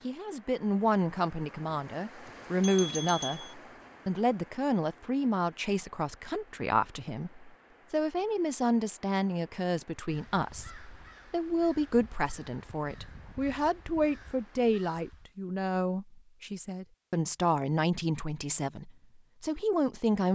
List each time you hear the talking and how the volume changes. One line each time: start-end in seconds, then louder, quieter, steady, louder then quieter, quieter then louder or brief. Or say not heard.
0.0-20.3 steady.